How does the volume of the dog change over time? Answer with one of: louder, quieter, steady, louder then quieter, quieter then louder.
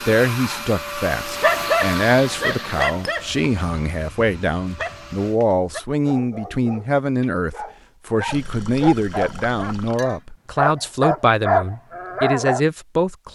quieter then louder.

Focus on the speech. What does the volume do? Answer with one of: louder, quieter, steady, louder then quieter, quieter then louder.
steady.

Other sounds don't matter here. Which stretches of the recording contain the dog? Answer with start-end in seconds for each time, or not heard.
1.2-12.6.